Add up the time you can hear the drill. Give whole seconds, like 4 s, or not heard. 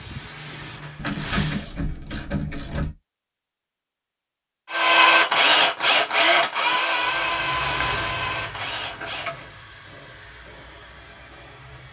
5 s.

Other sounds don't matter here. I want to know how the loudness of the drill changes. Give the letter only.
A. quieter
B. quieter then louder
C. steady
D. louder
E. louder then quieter
A.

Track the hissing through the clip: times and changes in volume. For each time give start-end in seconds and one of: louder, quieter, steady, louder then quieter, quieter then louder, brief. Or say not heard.
0.0-1.6 brief
6.9-11.8 quieter.